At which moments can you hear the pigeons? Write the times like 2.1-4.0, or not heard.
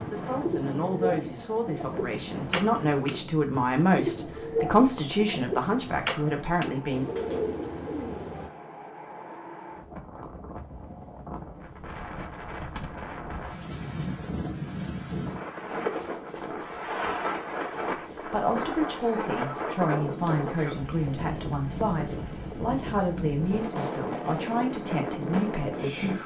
0.0-8.5.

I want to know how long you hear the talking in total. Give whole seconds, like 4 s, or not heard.
15 s.